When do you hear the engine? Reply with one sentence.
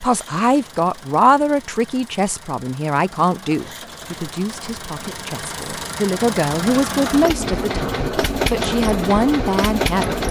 The engine can be heard from 0.0 to 10.2 s.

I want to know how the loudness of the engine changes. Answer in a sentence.
The loudness of the engine goes up.